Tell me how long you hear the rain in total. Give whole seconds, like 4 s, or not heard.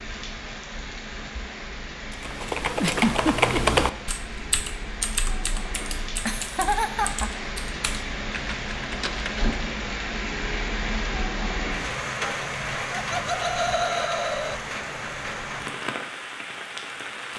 17 s.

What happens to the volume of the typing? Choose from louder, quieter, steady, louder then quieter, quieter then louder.
quieter.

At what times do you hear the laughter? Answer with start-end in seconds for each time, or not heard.
2.8-3.8, 6.2-7.5, 12.9-14.6.